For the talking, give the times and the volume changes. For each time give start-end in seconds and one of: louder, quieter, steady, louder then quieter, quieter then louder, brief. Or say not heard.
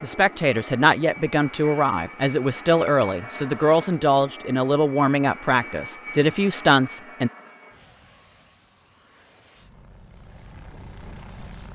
0.0-7.3 steady.